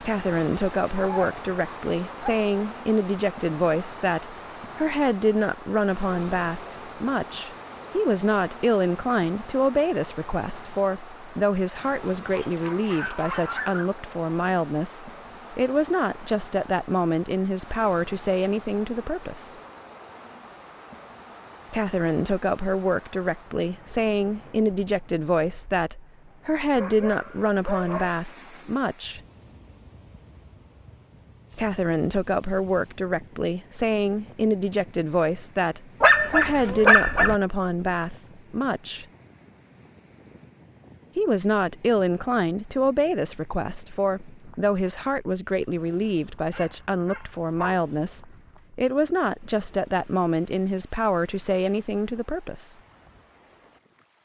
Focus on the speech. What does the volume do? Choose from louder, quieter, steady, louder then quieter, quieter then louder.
steady.